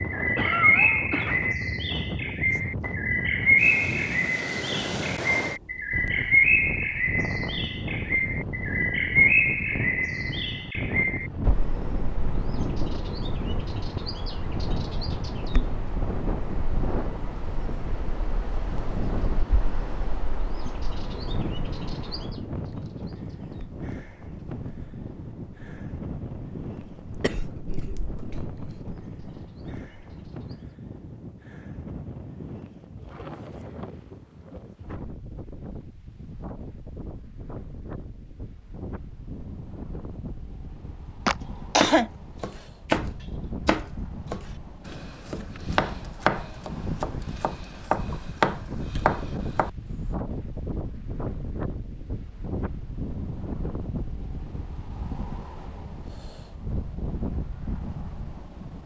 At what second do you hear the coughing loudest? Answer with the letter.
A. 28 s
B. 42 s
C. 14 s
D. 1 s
B.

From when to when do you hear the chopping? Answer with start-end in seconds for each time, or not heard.
41.8-50.1.